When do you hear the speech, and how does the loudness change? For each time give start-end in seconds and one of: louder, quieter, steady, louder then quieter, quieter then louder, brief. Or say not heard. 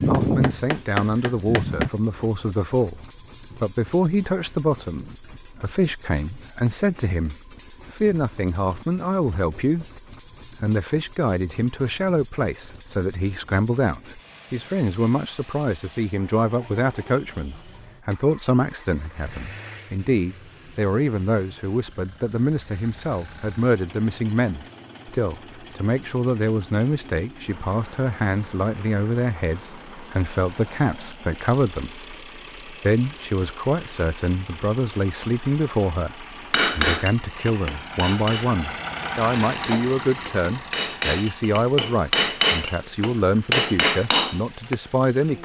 0.1-45.3 steady.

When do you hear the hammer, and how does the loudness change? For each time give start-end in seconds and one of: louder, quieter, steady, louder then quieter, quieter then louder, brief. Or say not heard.
0.0-1.9 brief
36.5-44.8 quieter then louder.